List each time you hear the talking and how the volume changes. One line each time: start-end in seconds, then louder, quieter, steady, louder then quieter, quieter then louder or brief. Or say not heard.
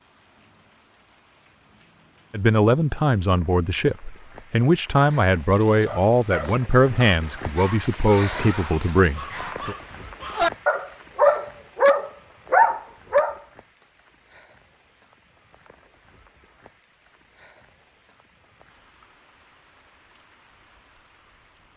2.3-9.8 steady.